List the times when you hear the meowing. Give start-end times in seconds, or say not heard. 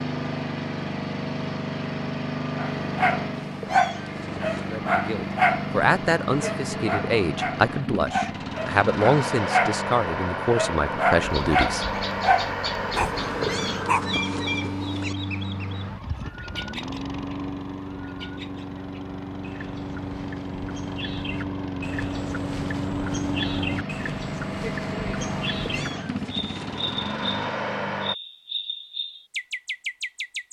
3.3-4.8, 13.2-15.2, 25.6-26.9.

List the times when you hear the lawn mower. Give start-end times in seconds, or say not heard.
0.0-28.1.